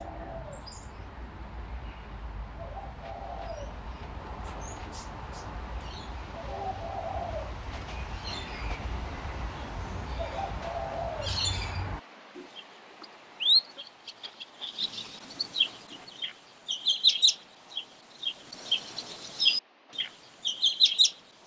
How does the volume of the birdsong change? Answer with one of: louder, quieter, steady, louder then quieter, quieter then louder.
louder.